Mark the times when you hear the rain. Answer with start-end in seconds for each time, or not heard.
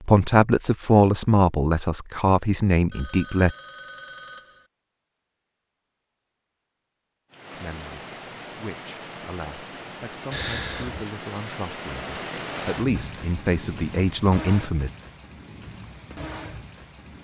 7.3-17.1.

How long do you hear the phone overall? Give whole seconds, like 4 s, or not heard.
4 s.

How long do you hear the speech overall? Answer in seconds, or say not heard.
11 s.